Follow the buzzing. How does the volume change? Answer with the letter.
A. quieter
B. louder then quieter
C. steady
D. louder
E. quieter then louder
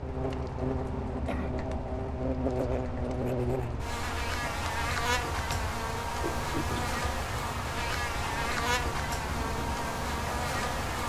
C.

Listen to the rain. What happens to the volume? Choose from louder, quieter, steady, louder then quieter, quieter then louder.
steady.